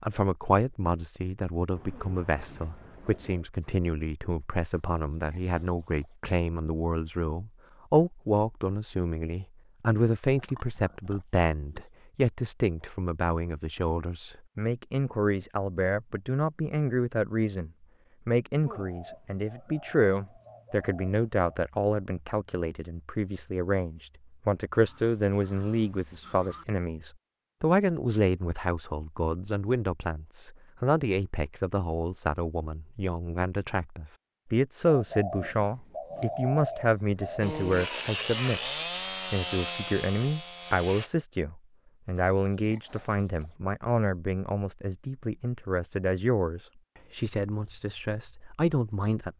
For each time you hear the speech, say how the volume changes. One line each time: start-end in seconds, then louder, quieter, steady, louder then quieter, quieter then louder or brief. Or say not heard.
0.0-38.7 steady
39.3-49.3 steady.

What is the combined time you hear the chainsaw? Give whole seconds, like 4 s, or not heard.
4 s.